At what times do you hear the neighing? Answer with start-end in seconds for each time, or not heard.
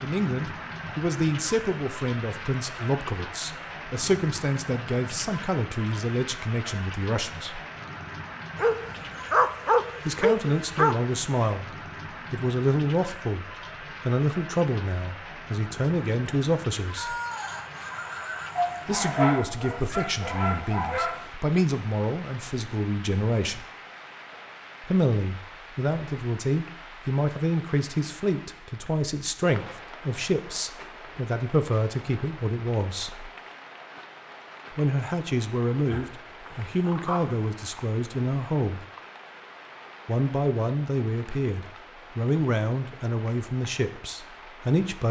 16.9-18.9.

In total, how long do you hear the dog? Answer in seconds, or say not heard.
7 s.